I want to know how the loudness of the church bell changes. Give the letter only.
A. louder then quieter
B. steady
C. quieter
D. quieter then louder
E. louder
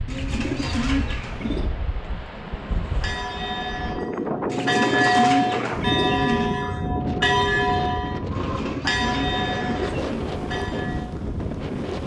A.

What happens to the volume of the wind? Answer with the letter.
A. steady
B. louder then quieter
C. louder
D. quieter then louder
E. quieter
C.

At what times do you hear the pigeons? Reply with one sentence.
The pigeons can be heard from 0.1 to 1.7 s, from 4.5 to 6.5 s and from 8.3 to 10.2 s.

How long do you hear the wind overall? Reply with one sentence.
The wind can be heard for 12 seconds in total.